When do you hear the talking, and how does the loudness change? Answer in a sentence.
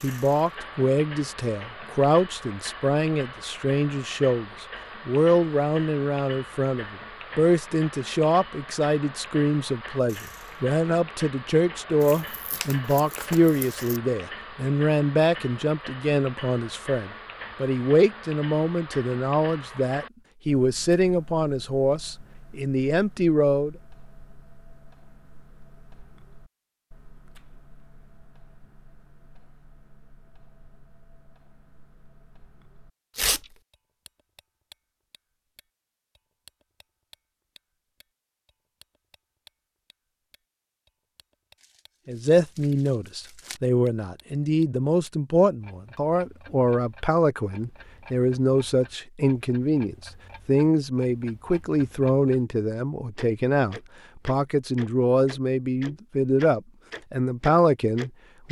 The talking can be heard from 0.0 to 23.8 s, at a steady volume; and from 42.0 to 58.4 s, at a steady volume.